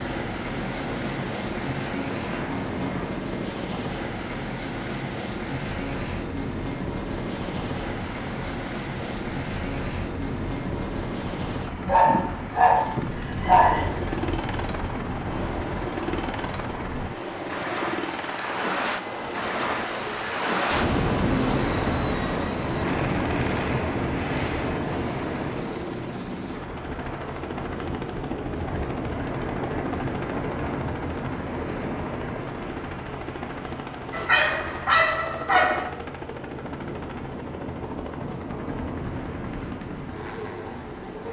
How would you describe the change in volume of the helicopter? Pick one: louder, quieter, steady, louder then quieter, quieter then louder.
quieter.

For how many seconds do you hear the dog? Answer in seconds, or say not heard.
4 s.